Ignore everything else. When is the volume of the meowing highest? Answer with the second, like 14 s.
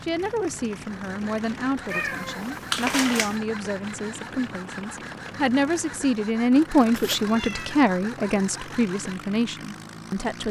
3 s.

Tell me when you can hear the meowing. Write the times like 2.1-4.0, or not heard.
1.9-3.4, 6.8-7.8.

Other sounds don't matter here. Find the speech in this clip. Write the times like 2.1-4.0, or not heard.
0.0-10.4.